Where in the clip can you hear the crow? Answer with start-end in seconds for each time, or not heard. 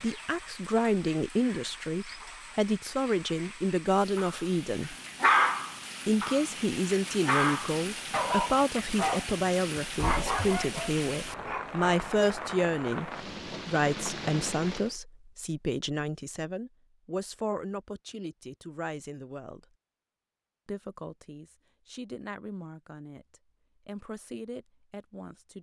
not heard.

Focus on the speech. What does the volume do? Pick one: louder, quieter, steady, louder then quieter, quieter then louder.
quieter.